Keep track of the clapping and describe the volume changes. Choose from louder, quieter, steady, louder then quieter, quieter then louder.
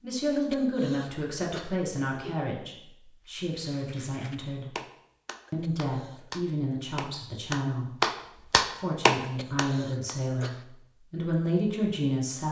louder.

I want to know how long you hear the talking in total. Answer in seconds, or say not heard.
11 s.